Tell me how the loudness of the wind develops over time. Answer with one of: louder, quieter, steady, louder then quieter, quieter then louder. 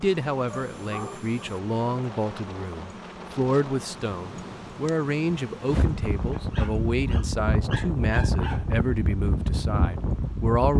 louder.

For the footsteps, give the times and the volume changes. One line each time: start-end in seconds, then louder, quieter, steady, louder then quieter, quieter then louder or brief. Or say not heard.
not heard.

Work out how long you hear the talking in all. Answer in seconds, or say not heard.
11 s.